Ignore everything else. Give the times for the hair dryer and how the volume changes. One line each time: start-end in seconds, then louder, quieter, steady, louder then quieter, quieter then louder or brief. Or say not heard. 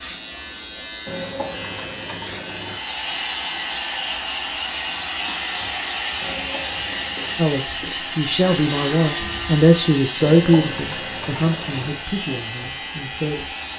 2.6-13.7 quieter.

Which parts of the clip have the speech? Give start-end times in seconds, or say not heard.
7.3-13.4.